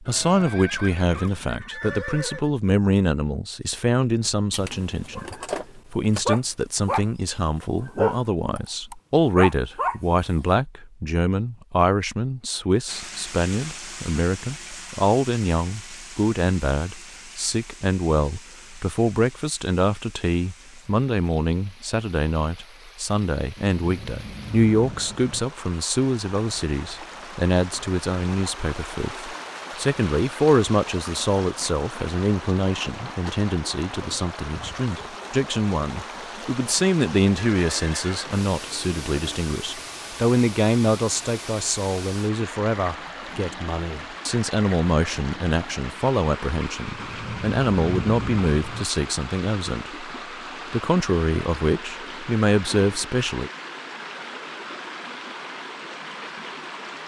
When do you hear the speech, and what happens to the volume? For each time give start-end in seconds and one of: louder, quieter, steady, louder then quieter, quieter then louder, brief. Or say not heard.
0.0-50.0 steady
50.7-53.5 brief.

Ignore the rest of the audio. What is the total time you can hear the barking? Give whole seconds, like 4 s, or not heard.
5 s.